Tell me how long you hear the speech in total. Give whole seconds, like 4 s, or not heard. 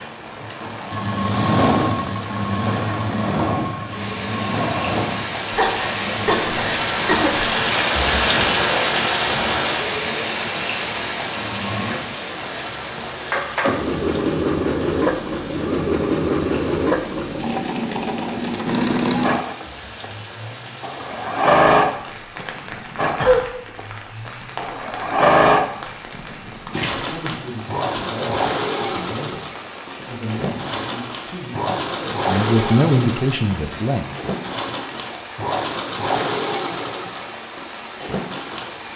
7 s.